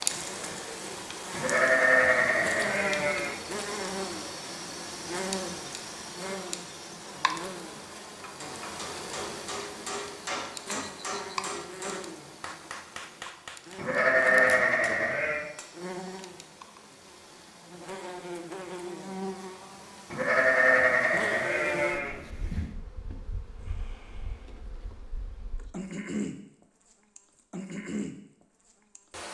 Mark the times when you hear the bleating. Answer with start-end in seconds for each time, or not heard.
1.4-3.4, 13.8-15.5, 20.1-22.7.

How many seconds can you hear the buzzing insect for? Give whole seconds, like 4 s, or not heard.
29 s.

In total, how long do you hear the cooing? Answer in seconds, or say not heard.
not heard.